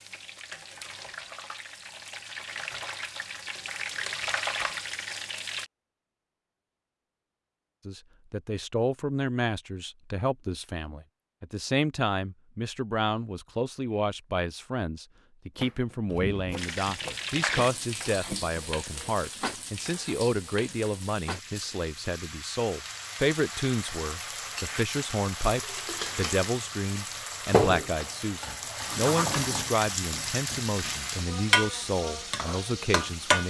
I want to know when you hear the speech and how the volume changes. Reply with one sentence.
The speech can be heard from 7.8 to 33.4 s, at a steady volume.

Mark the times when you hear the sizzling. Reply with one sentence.
The sizzling can be heard from 0.0 to 5.7 s and from 16.6 to 33.4 s.